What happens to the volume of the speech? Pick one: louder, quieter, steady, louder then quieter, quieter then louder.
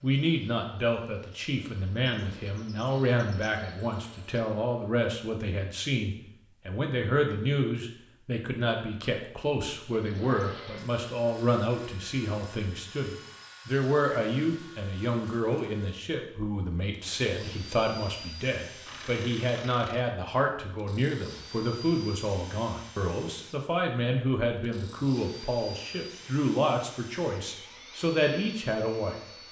steady.